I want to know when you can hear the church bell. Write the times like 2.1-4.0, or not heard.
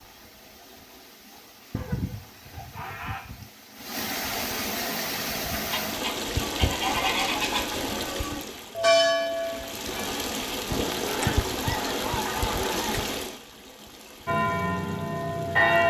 4.8-10.2, 14.2-15.8.